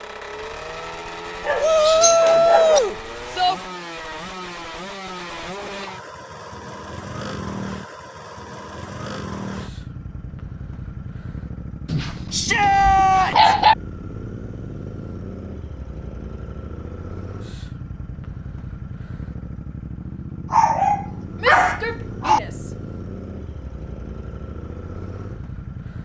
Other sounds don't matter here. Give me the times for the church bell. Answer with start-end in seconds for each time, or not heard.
not heard.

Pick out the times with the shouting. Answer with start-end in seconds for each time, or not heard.
1.6-3.5, 12.3-13.6, 21.4-22.7.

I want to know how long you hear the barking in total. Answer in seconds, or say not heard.
5 s.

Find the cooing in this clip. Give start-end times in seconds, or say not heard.
not heard.